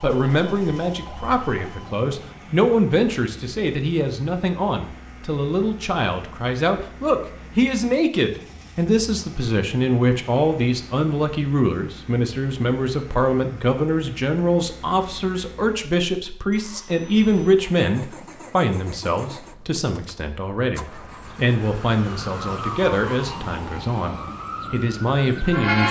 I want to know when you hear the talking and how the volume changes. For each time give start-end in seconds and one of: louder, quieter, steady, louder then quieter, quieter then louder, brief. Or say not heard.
0.0-25.8 steady.